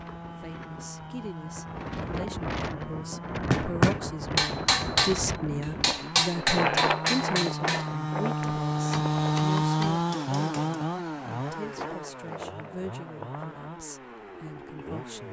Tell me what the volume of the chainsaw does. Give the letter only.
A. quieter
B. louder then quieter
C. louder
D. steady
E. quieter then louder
B.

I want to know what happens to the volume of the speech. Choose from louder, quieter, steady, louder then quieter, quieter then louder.
louder then quieter.